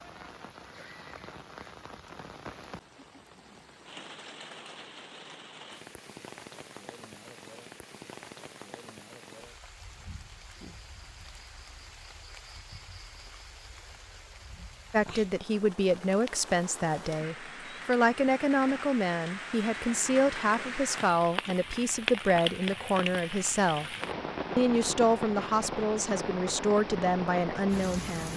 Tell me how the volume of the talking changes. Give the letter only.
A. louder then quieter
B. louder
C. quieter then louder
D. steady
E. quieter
D.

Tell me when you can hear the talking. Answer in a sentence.
The talking can be heard from 14.9 to 23.9 s and from 24.6 to 28.3 s.